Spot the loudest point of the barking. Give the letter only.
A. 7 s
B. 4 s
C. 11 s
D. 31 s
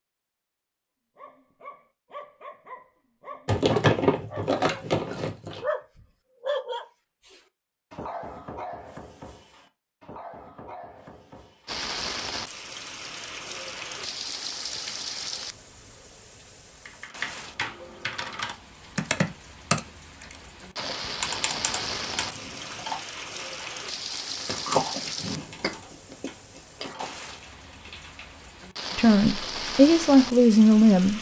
A.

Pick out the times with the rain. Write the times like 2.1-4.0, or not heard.
11.7-31.1.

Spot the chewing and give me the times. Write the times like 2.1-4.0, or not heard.
3.5-5.7, 24.2-27.1.